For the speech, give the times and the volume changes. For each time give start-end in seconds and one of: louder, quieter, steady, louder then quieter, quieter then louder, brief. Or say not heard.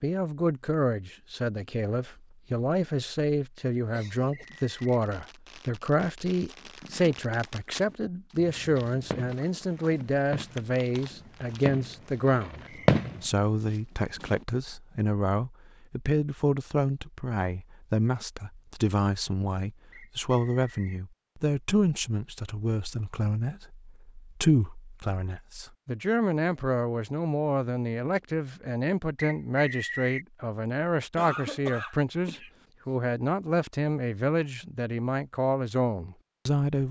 0.0-12.6 steady
13.2-36.8 steady.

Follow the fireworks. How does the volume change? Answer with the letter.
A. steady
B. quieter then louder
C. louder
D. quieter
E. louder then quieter
C.